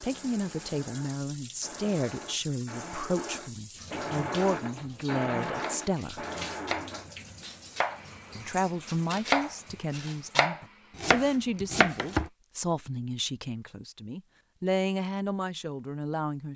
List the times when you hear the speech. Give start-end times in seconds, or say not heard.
0.0-6.2, 8.3-16.5.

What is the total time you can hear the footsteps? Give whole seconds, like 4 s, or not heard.
not heard.